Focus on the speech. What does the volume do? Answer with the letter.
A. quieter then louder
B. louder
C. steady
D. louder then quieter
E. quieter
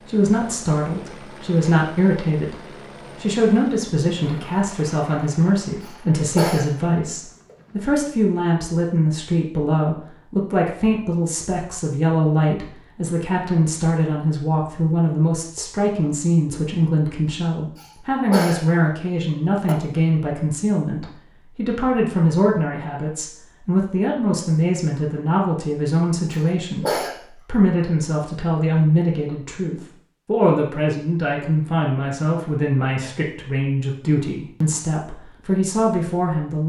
C.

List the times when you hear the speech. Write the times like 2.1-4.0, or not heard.
0.1-36.6.